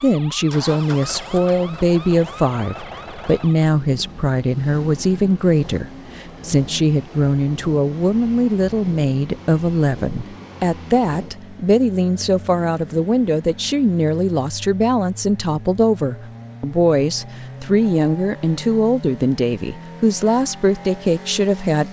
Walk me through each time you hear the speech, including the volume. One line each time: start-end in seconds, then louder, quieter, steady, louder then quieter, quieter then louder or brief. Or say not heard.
0.0-21.8 steady.